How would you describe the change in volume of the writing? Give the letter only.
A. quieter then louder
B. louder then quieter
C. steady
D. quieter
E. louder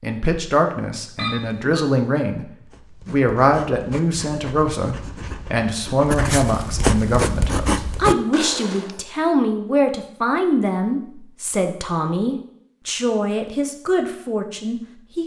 E.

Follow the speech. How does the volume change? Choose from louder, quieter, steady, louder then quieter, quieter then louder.
steady.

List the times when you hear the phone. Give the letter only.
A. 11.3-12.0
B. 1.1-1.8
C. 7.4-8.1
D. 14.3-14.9
B.